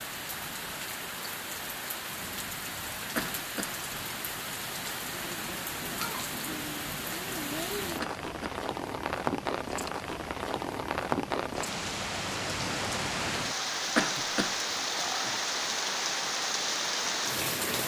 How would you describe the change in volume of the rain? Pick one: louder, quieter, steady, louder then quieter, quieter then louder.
louder.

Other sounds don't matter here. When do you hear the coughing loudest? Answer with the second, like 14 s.
14 s.